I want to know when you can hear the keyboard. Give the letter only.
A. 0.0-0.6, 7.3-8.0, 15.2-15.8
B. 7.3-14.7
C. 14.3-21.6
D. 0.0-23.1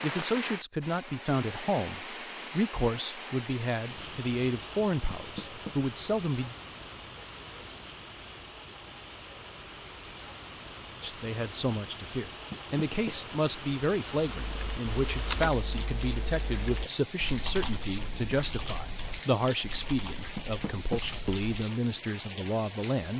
C.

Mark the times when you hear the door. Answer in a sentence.
The door can be heard from 5.2 to 5.8 s, from 12.5 to 13.2 s and from 20.4 to 21.0 s.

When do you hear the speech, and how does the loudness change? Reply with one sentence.
You can hear the speech from 0.0 to 6.5 s, at a steady volume; and from 11.0 to 23.1 s, at a steady volume.